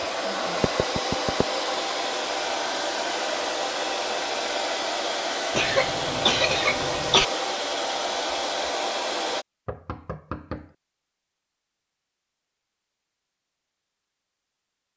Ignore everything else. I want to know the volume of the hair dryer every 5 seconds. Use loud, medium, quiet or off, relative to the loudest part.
loud, loud, off.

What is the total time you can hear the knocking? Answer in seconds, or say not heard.
2 s.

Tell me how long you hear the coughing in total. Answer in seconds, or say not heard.
2 s.